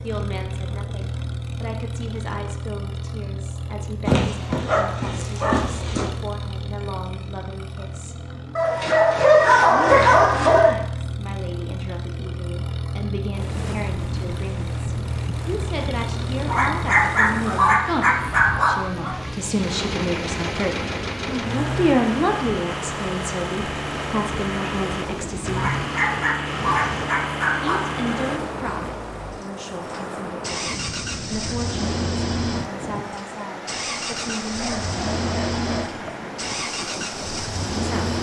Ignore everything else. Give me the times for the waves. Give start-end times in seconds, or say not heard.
13.3-38.1.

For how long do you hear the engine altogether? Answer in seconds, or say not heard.
38 s.